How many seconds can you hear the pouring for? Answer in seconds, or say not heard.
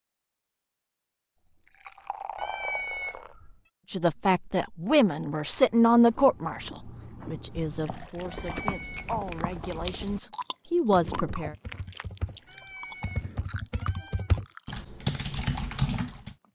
4 s.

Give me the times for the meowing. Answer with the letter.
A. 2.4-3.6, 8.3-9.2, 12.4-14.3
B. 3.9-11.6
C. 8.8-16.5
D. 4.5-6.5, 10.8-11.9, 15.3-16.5
A.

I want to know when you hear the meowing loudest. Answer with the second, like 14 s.
3 s.